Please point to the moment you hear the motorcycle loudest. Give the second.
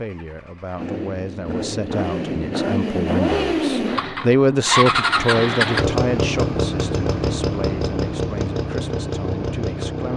5 s.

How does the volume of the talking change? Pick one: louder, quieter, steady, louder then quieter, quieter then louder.
louder then quieter.